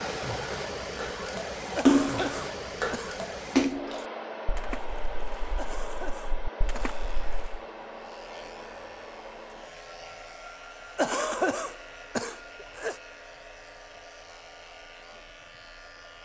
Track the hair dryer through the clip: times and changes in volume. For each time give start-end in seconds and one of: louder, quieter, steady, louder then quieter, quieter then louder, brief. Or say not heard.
0.0-16.1 quieter.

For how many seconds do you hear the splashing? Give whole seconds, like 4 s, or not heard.
7 s.